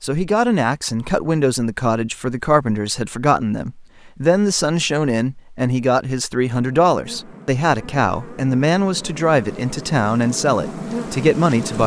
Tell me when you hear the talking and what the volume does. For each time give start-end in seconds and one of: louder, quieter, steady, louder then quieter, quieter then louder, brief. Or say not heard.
0.0-11.8 steady.